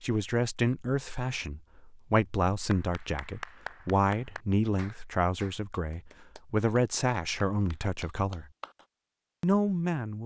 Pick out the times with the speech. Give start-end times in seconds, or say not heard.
0.0-8.4, 9.4-10.2.